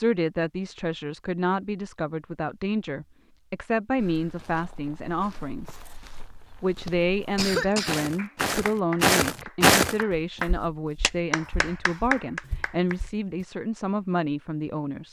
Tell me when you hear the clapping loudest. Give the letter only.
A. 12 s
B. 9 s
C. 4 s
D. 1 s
A.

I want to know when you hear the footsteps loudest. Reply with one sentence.
The volume of the footsteps peaks at 10 seconds.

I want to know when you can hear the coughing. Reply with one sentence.
The coughing can be heard from 6.8 to 8.1 s.